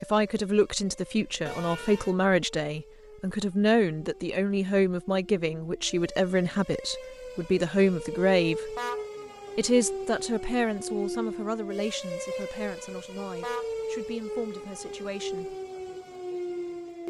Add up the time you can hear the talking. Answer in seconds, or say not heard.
15 s.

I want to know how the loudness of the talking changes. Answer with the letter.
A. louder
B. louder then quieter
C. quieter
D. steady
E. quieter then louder
C.